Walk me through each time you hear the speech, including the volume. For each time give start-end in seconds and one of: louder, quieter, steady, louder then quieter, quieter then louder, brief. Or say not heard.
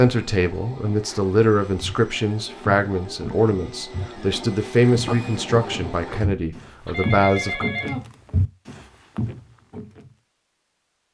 0.0-7.7 steady.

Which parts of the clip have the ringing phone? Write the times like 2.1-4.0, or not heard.
6.8-8.1.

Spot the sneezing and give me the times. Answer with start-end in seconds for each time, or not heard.
not heard.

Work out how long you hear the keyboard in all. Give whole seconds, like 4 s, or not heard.
not heard.